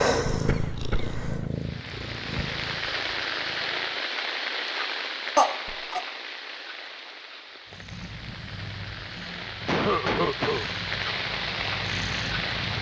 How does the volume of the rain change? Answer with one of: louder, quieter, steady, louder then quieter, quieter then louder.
quieter then louder.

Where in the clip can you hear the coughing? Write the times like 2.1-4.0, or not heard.
0.2-1.2, 5.3-6.0, 9.7-10.7.